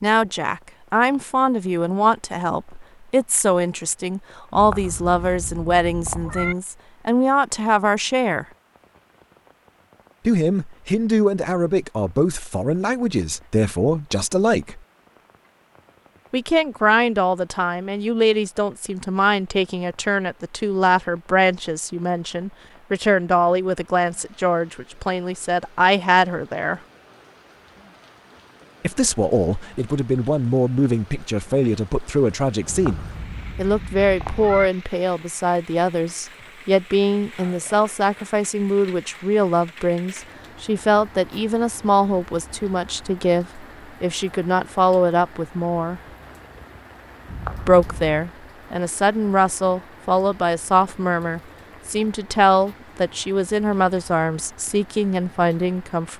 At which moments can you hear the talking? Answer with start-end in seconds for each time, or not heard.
0.0-8.4, 10.2-14.8, 16.3-26.8, 28.8-46.0, 47.6-56.1.